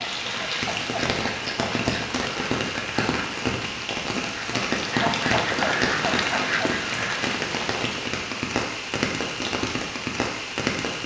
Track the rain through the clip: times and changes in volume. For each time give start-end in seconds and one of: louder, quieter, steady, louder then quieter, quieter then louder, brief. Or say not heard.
0.0-11.0 steady.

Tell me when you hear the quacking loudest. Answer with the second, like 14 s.
6 s.